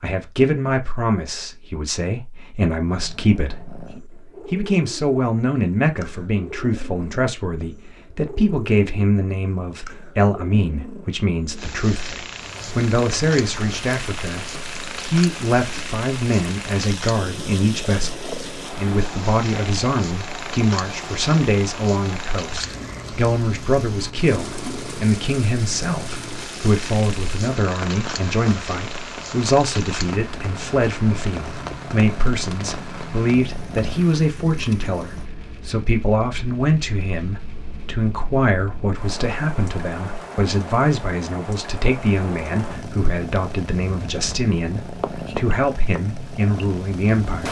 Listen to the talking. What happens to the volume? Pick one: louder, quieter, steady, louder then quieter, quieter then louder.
steady.